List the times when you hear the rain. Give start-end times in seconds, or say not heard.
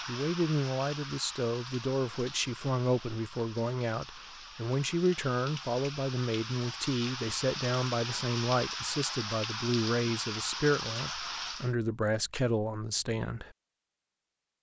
0.0-11.8.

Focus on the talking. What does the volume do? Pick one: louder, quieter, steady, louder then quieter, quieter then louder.
steady.